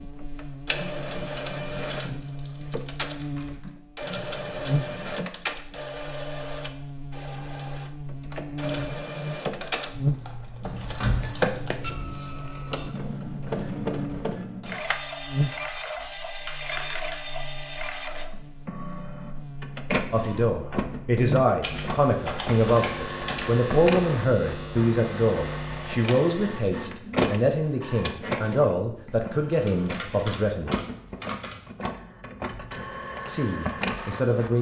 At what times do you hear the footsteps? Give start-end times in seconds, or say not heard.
not heard.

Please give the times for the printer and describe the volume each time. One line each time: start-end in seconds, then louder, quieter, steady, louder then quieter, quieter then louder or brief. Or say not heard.
0.0-34.5 steady.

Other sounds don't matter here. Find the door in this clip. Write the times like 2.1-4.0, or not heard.
10.6-11.3.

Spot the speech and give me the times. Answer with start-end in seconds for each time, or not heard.
20.1-30.8, 33.2-34.5.